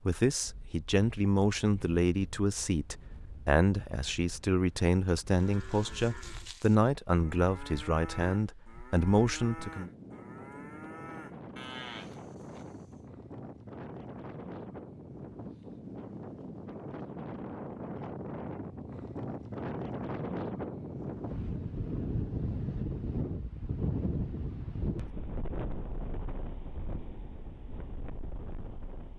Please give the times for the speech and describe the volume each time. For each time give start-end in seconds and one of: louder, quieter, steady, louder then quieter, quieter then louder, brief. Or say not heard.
0.1-9.9 steady.